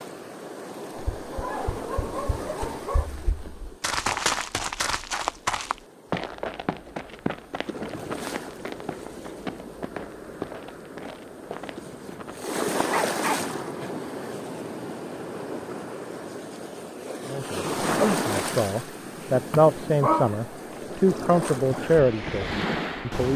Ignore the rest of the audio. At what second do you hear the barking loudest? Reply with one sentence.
The loudest moment of the barking is at 20 seconds.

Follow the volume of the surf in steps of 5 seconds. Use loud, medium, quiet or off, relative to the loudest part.
medium, medium, loud, loud, loud.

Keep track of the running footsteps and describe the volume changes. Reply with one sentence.
The volume of the running footsteps goes up, then down.